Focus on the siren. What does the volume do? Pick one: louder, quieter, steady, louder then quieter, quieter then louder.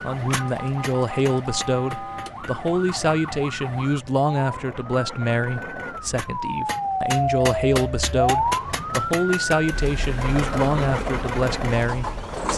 louder then quieter.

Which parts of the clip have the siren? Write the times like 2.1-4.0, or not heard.
0.0-12.5.